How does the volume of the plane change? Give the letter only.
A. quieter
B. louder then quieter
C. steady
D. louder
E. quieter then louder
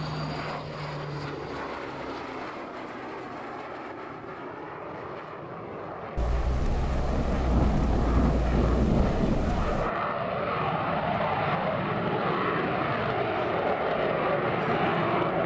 D.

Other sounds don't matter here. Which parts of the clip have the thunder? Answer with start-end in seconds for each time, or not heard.
6.2-9.9.